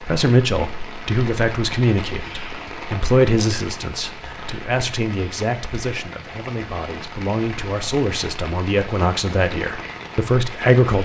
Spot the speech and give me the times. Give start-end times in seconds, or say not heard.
0.0-11.0.